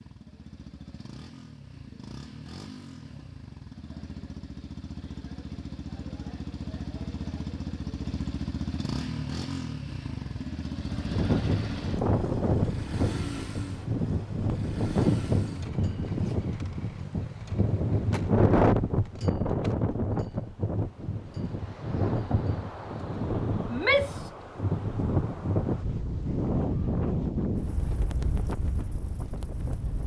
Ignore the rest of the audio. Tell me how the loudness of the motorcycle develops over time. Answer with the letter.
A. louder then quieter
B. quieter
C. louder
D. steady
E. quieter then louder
A.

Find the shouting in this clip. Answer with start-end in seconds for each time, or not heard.
23.6-24.3.